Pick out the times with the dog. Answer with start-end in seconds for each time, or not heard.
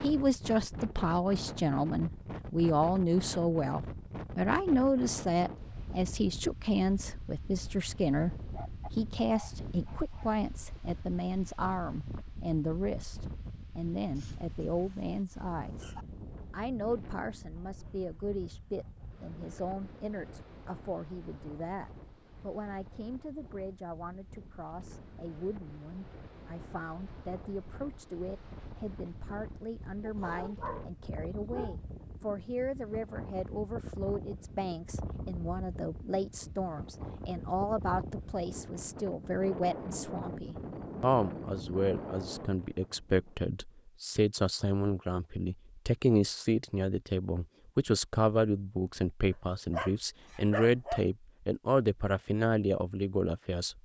8.6-10.3, 14.2-16.1, 30.0-31.8, 49.3-51.0.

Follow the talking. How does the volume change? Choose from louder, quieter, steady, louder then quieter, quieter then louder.
quieter then louder.